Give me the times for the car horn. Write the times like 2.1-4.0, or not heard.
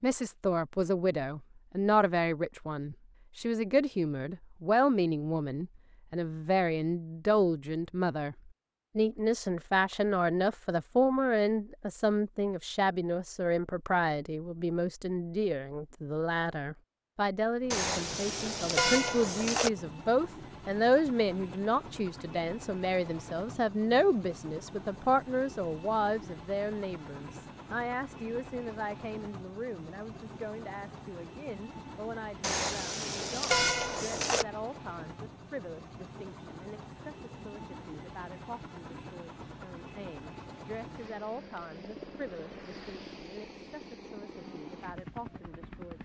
17.7-19.7, 32.4-34.5.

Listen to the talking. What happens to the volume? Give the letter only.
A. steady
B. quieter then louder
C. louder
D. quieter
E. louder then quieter
D.